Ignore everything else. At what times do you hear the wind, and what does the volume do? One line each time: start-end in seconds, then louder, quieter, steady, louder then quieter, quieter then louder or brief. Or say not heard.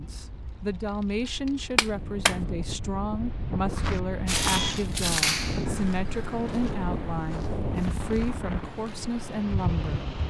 0.0-10.2 louder.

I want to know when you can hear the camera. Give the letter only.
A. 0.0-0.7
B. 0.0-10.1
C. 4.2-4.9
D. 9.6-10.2
C.